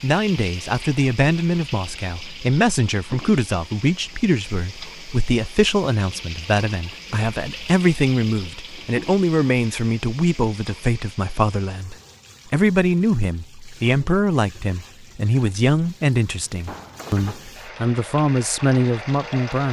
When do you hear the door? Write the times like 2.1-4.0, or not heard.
16.6-17.6.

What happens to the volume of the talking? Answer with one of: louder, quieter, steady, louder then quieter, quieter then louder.
steady.